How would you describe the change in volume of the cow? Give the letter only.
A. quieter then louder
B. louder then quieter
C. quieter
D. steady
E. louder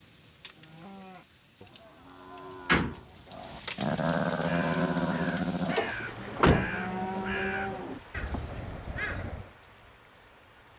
E.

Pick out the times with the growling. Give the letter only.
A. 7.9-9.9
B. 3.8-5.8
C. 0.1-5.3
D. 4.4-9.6
B.